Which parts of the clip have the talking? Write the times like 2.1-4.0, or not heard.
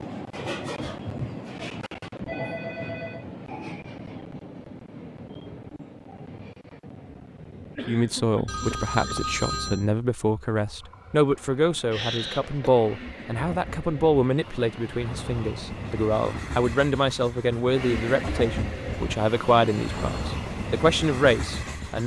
7.8-22.0.